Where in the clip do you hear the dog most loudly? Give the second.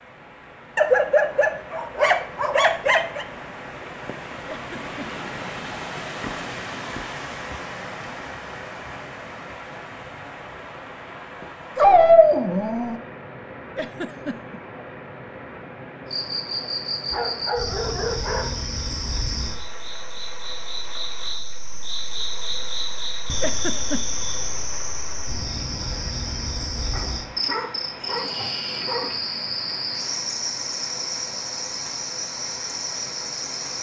12 s.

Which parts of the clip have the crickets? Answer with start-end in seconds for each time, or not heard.
16.1-33.7.